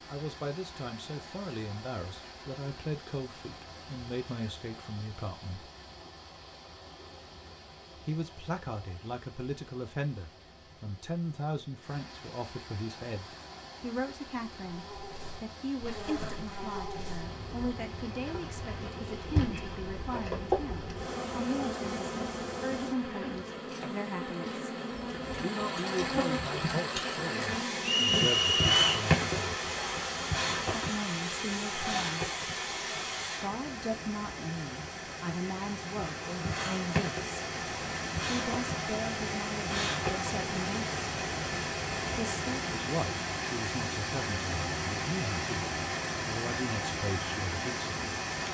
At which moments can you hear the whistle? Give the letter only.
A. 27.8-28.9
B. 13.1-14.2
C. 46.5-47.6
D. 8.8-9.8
A.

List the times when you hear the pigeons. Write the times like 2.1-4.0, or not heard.
not heard.